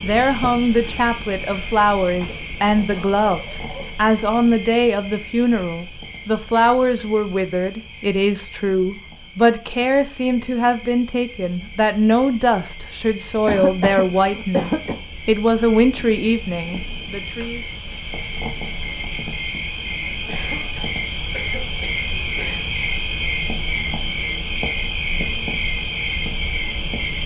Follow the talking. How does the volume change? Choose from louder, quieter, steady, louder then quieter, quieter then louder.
steady.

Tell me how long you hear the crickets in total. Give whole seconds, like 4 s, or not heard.
27 s.